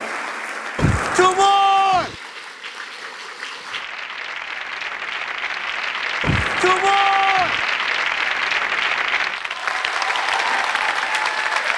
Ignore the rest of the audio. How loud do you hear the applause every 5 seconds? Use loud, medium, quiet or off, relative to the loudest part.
medium, loud, loud.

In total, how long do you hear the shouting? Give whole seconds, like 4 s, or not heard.
3 s.